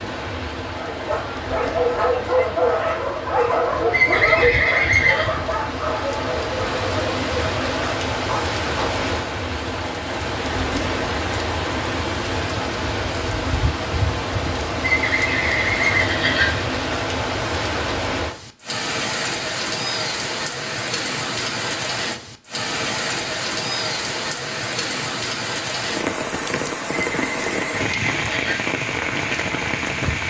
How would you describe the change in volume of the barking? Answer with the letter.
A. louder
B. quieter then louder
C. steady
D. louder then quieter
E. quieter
E.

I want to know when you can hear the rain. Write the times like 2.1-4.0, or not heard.
0.0-30.2.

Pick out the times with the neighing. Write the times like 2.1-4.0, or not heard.
3.9-5.3, 14.8-16.7, 27.0-28.6.